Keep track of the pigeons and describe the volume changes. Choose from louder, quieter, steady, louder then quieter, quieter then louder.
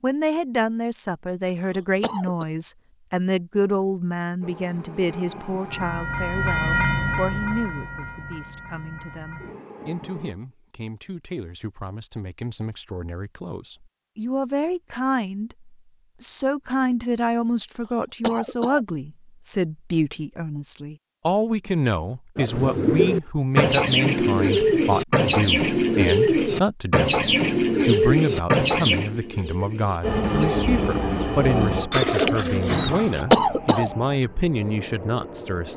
quieter then louder.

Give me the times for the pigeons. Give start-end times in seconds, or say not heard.
22.4-33.2.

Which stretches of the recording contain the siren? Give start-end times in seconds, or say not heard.
not heard.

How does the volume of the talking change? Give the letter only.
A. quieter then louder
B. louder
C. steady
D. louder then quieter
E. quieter
A.